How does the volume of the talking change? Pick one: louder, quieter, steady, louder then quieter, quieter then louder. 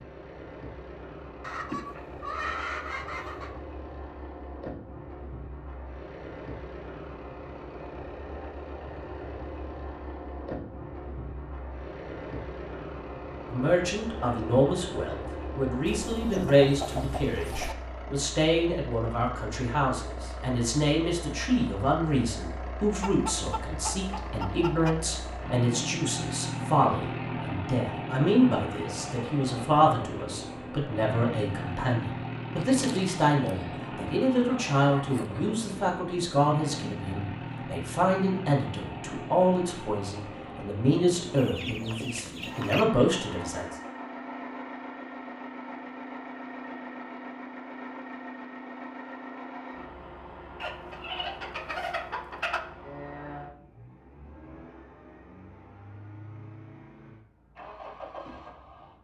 steady.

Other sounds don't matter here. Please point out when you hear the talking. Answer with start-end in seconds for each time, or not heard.
13.5-43.8.